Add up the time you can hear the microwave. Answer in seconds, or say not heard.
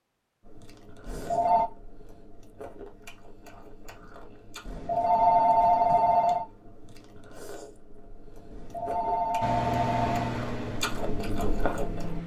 3 s.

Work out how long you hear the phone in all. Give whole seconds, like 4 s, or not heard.
4 s.